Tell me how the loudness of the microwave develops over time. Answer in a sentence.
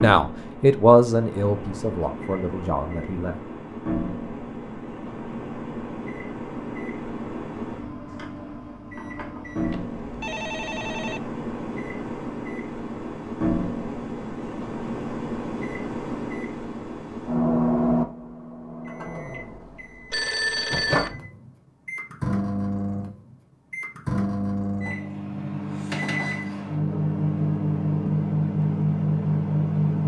The volume of the microwave goes up.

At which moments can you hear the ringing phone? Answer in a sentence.
You can hear the ringing phone from 9.6 to 11.2 s and from 20.1 to 21.1 s.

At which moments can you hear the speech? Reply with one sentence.
The speech can be heard from 0.0 to 3.4 s.